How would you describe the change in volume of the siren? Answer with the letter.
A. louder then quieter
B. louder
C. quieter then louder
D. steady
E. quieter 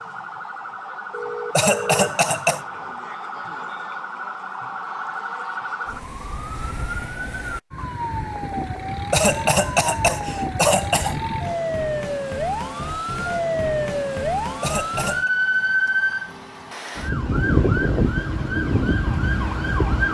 B.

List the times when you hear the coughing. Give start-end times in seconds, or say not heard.
1.5-2.6, 9.1-11.2, 14.6-15.3.